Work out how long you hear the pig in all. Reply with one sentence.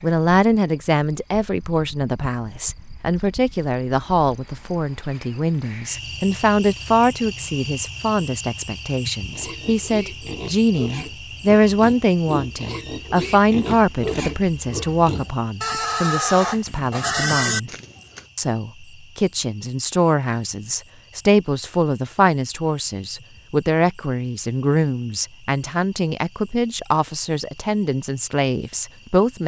You can hear the pig for 9 seconds altogether.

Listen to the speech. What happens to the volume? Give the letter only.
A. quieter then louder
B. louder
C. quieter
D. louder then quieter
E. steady
E.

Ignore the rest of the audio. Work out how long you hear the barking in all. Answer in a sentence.
You can't hear the barking here.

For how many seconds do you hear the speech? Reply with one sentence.
You can hear the speech for 29 seconds altogether.